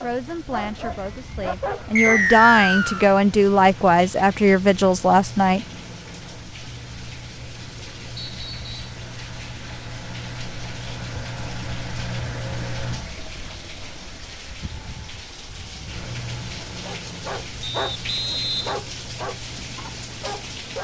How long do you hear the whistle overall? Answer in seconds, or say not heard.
3 s.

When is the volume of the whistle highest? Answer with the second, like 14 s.
2 s.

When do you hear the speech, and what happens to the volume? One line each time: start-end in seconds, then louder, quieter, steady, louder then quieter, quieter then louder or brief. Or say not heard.
0.0-5.7 louder.